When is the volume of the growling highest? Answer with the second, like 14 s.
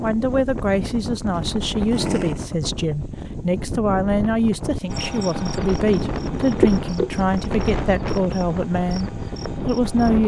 2 s.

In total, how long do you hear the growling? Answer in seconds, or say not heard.
2 s.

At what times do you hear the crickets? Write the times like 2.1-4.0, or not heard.
4.9-10.2.